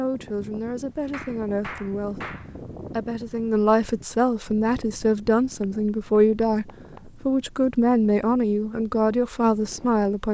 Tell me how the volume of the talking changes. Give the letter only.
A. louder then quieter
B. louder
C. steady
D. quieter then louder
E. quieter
B.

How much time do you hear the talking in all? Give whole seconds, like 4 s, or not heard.
10 s.